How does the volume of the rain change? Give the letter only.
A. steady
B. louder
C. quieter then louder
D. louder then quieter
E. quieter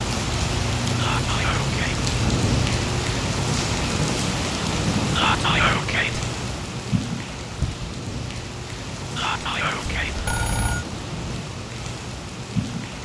E.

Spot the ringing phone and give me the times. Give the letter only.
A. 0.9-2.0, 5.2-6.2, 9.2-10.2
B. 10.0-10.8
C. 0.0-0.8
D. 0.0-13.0
B.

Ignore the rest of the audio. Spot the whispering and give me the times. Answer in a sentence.
You can hear the whispering from 0.9 to 2.0 s, from 5.2 to 6.2 s and from 9.2 to 10.2 s.